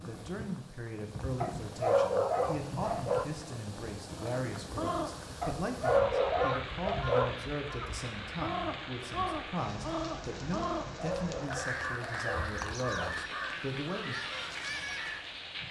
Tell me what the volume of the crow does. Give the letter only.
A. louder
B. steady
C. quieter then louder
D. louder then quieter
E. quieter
B.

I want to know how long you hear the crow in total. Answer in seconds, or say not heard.
11 s.